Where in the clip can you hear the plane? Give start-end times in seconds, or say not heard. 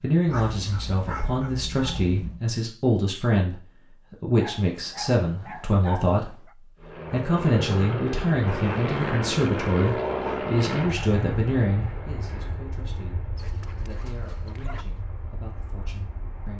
6.8-16.5.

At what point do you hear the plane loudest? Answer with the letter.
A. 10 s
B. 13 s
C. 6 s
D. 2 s
A.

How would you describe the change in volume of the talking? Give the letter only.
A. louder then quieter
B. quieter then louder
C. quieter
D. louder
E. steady
C.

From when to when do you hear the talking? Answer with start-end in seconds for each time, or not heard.
0.0-16.5.